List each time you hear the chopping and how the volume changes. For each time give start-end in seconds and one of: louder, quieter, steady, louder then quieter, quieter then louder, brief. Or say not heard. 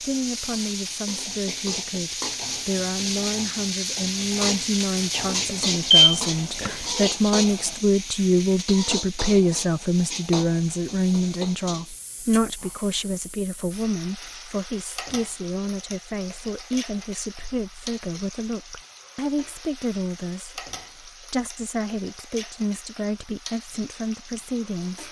not heard.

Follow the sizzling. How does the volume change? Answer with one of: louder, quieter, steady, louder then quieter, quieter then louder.
quieter.